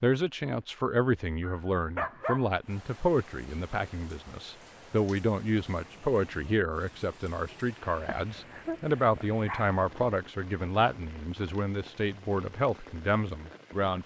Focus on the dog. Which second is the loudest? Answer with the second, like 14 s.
2 s.